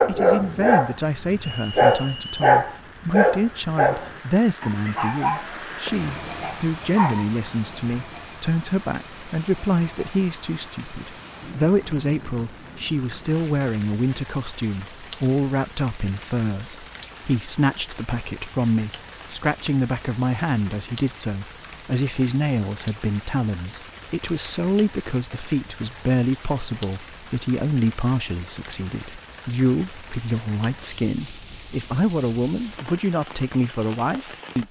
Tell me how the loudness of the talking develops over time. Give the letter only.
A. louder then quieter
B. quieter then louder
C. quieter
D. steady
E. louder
D.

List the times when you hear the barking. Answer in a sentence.
You can hear the barking from 0.0 to 7.8 s.